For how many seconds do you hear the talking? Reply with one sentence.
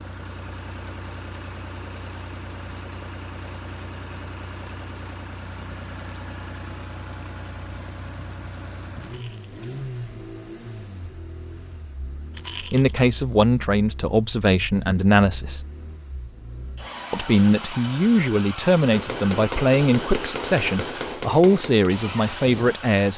You can hear the talking for 9 seconds altogether.